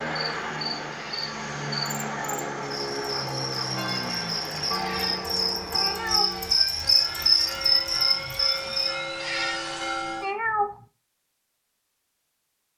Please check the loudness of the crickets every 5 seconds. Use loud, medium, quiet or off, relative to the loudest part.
medium, loud, off.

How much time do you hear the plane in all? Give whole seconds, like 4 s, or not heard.
10 s.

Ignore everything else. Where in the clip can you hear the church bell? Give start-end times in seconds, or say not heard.
3.8-10.2.